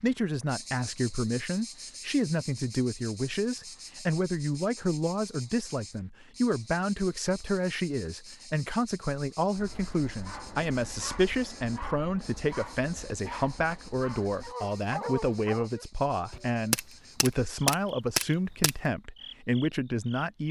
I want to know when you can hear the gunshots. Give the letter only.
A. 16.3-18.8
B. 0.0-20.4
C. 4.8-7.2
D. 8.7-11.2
A.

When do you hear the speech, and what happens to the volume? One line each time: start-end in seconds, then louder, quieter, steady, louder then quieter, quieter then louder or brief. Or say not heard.
0.0-20.4 steady.